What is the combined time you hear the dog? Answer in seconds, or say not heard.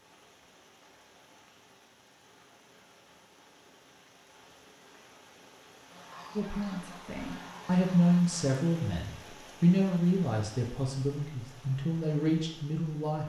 not heard.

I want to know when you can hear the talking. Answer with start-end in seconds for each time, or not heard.
6.3-13.2.